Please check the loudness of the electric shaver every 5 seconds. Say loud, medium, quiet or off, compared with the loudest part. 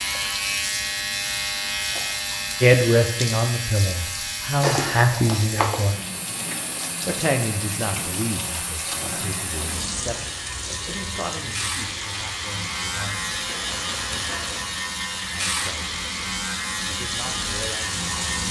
loud, medium, loud, loud.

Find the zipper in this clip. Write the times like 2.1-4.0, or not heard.
4.6-5.8.